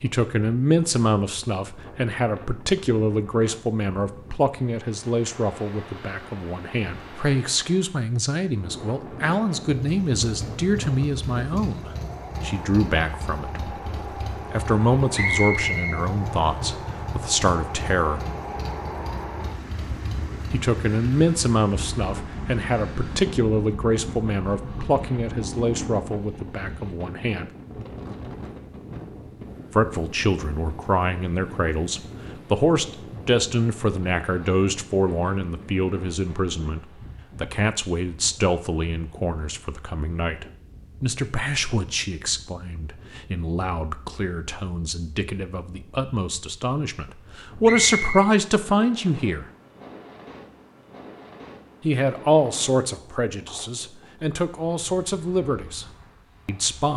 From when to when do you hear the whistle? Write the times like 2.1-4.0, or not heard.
15.1-15.9, 47.6-48.3.